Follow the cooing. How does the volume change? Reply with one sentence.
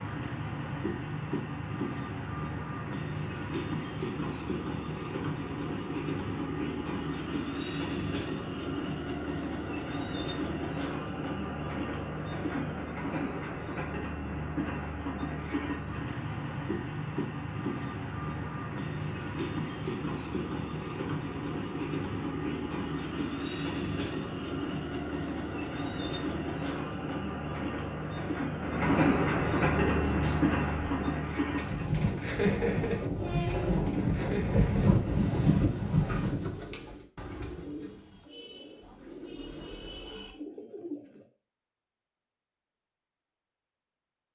The loudness of the cooing goes up, then down.